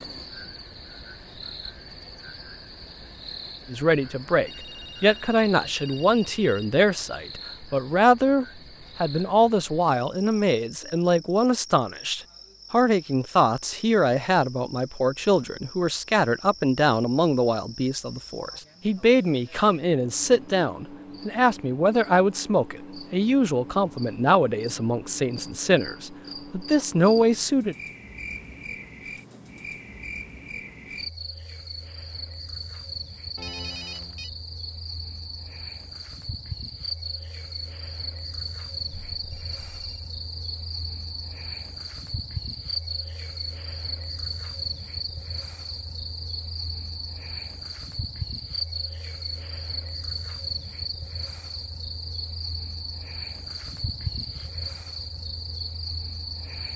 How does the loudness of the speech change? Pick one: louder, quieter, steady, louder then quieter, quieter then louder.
steady.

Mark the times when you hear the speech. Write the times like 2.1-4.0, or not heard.
3.7-27.8.